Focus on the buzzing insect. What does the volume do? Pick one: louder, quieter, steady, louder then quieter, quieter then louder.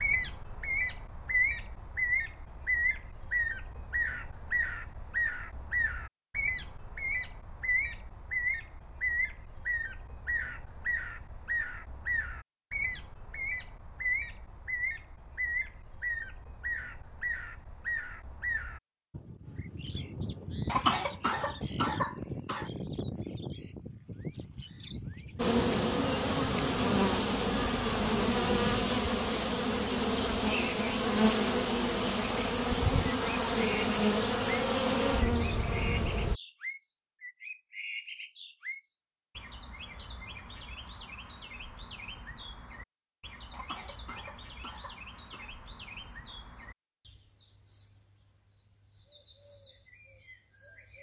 steady.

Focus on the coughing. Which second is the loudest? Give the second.
21 s.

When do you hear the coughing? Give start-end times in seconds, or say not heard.
20.6-22.7, 43.5-45.5.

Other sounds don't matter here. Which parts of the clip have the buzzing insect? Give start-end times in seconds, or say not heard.
25.4-36.4.